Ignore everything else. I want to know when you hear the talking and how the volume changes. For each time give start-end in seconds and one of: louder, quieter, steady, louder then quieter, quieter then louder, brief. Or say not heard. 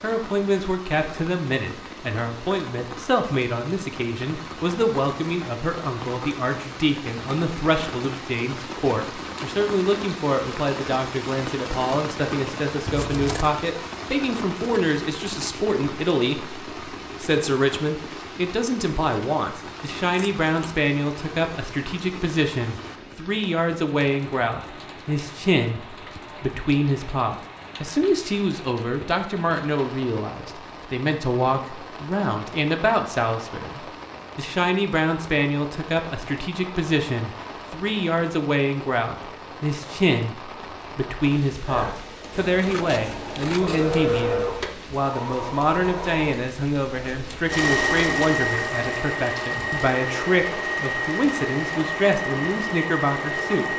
0.0-53.7 steady.